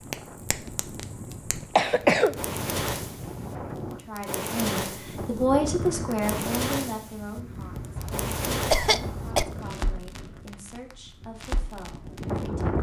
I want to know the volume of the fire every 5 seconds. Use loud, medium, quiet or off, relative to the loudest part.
loud, loud, medium.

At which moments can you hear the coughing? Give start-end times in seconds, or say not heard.
1.8-2.4, 8.0-9.4.